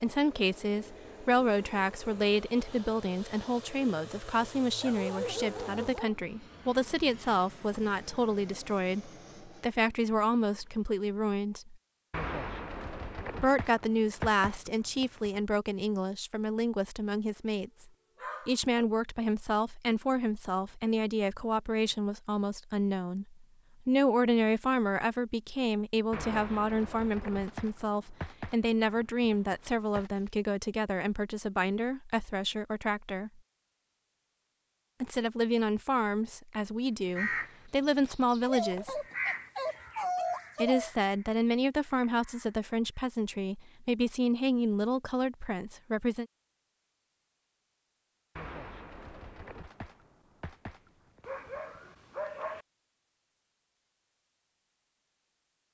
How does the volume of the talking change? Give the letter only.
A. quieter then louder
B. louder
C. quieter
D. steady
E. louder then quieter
D.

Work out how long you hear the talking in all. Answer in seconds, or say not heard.
41 s.